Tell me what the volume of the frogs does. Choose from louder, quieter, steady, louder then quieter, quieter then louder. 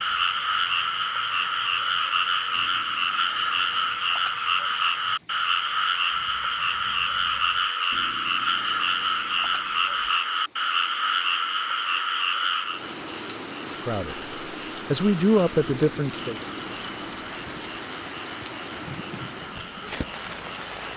quieter.